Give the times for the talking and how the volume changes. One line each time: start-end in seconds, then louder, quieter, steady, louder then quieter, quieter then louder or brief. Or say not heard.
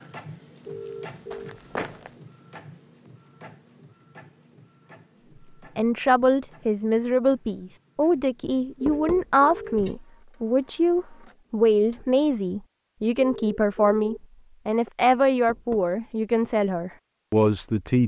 5.8-18.0 steady.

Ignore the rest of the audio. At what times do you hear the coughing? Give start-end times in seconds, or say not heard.
not heard.